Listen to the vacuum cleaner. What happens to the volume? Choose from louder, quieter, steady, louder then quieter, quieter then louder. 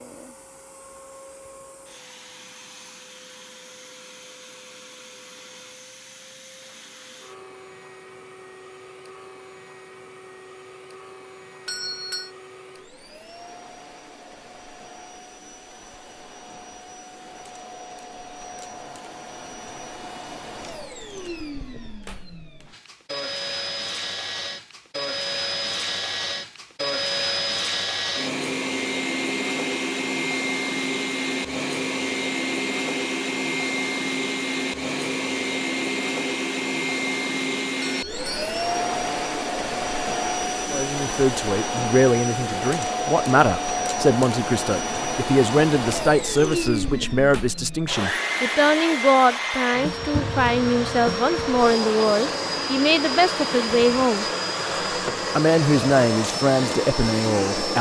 louder.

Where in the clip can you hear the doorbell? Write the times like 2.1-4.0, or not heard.
11.7-12.3, 37.8-38.5.